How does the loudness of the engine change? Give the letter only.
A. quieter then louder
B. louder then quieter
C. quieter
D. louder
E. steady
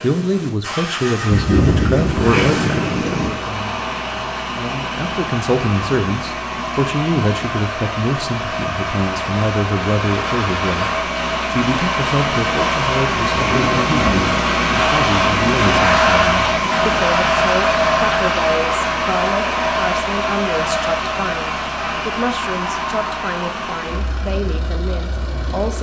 B.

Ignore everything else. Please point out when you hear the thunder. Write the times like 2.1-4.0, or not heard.
1.2-3.3, 13.3-14.3.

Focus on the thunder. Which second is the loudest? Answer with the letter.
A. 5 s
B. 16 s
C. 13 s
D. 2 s
D.